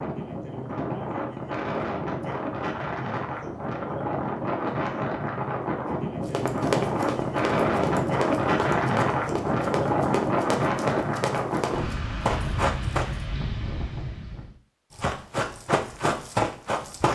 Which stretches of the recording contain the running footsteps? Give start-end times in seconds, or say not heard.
6.2-13.2, 14.9-17.0.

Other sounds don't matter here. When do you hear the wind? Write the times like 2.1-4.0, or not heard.
0.0-14.6.